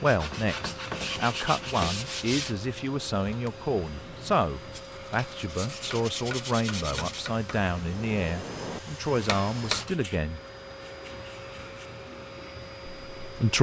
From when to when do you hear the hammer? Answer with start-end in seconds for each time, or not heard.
5.7-9.8.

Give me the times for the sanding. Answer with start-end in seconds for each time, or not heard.
0.1-2.5, 4.7-7.2, 9.8-11.9.